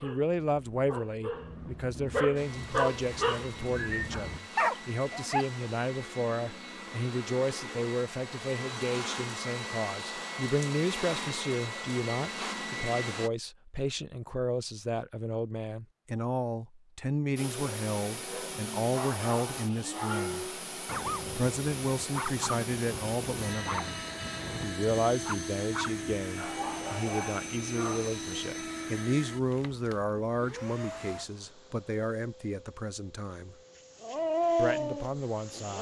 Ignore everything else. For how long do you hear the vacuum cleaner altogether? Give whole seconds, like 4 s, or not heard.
29 s.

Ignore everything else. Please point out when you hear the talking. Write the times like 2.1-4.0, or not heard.
0.0-20.5, 21.3-24.0, 24.6-33.5, 34.5-35.7.